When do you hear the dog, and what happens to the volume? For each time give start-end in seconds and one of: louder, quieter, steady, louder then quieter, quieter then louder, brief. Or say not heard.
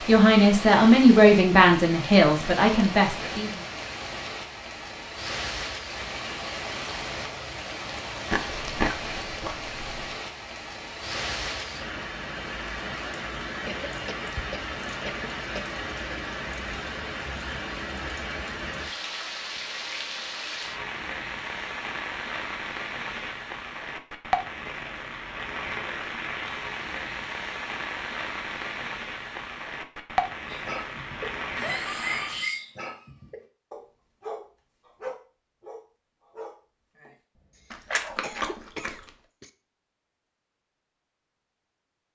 30.5-38.6 quieter.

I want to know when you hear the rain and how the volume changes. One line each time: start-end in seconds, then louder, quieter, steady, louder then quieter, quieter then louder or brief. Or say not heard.
0.0-32.5 steady.